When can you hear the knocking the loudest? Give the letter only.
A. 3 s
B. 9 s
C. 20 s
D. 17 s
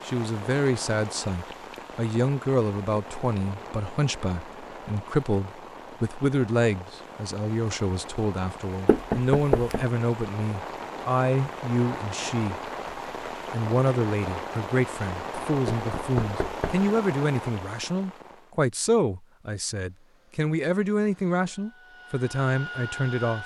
B.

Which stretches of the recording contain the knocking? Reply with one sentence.
You can hear the knocking from 8.8 to 9.8 s and from 15.7 to 16.9 s.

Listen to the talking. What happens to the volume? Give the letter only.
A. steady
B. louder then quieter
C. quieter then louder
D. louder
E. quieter
A.